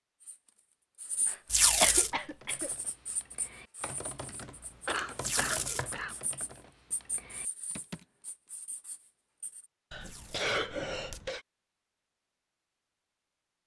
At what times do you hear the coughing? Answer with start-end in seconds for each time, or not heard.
1.2-2.7, 4.8-6.2, 9.9-11.4.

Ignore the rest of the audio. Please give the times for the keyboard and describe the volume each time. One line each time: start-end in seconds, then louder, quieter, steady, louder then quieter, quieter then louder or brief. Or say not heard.
2.0-8.1 louder then quieter.